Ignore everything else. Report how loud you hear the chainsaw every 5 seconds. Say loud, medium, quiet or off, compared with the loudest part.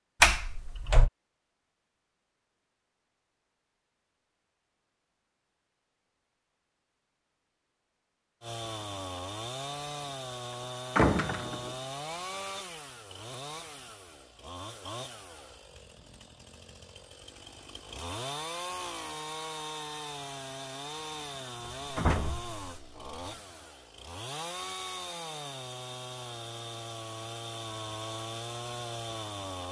off, loud, loud, loud, loud, loud.